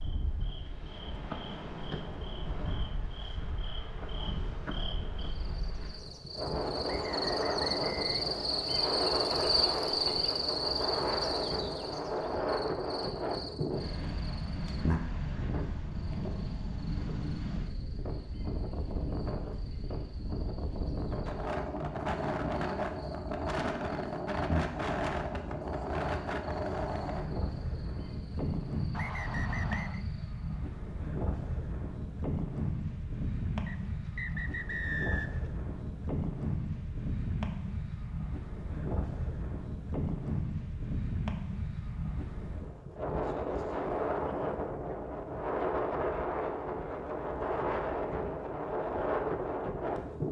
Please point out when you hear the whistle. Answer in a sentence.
The whistle can be heard from 6.8 to 8.7 s, from 28.9 to 30.1 s and from 33.6 to 35.5 s.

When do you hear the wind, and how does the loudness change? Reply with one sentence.
You can hear the wind from 0.0 to 50.2 s, at a steady volume.